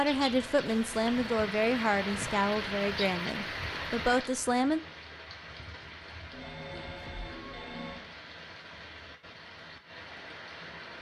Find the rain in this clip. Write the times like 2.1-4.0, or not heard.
0.0-10.9.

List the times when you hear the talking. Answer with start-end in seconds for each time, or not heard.
0.0-4.8.